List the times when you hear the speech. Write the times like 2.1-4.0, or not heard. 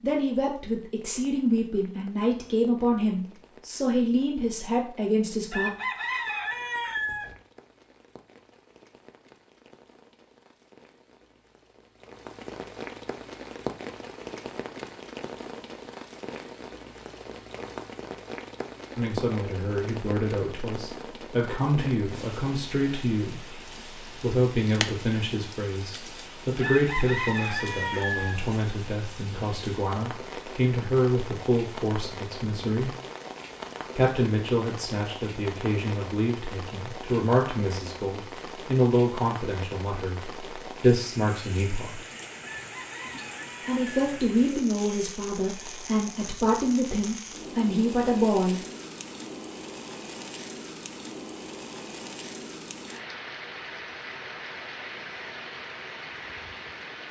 0.0-5.7, 18.9-23.4, 24.2-33.0, 34.0-42.0, 43.6-48.6.